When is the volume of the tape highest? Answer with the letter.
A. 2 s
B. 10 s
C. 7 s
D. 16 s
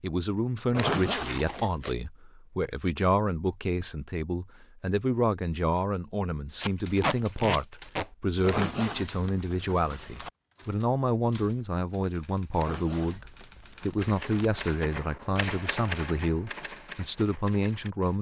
C.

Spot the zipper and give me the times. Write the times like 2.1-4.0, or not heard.
0.7-1.6, 8.4-10.3, 12.6-14.2.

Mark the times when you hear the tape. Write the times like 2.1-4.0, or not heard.
1.2-1.9, 6.6-8.1, 13.2-14.7.